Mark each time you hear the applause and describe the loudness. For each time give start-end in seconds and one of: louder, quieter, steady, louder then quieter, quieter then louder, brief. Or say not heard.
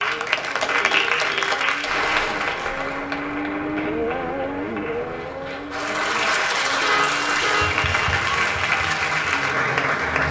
0.0-10.2 quieter then louder.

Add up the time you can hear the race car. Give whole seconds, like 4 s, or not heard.
10 s.